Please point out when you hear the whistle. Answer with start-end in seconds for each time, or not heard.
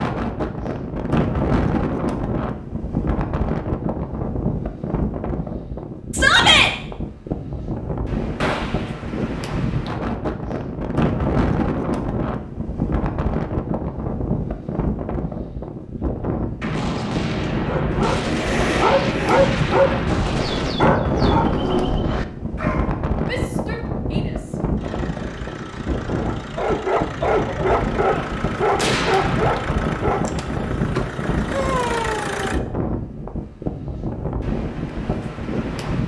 not heard.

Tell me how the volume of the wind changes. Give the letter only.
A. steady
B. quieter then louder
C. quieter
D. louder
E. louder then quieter
A.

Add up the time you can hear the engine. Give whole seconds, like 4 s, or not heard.
8 s.